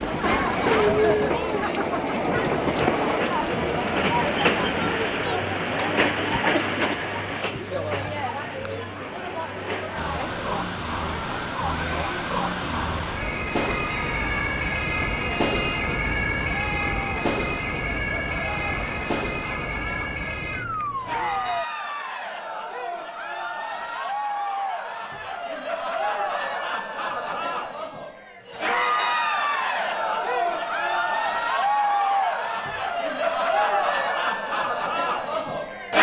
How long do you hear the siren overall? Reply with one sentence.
You can hear the siren for 12 seconds altogether.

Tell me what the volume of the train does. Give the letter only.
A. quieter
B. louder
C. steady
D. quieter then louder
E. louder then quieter
A.